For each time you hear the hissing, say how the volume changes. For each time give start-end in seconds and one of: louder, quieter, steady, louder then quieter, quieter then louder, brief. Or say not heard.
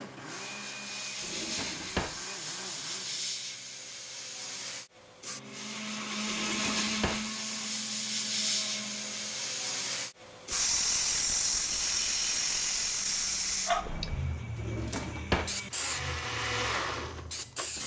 0.0-17.8 louder then quieter.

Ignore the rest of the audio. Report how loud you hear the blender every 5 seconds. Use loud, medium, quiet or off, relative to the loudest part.
medium, loud, quiet, loud.